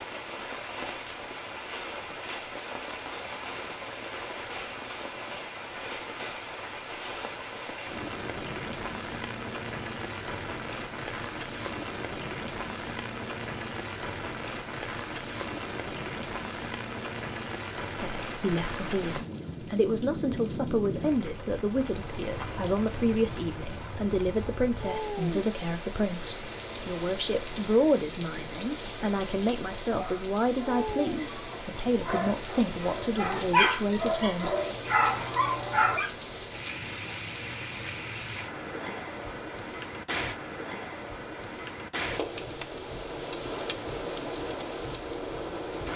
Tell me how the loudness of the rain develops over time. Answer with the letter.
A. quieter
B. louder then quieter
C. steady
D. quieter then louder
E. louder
C.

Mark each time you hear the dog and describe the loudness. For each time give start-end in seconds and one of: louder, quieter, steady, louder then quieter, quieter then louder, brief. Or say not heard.
29.9-36.1 louder.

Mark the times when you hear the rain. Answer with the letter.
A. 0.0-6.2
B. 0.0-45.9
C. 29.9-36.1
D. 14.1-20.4
B.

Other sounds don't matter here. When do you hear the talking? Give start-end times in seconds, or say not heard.
17.9-34.5.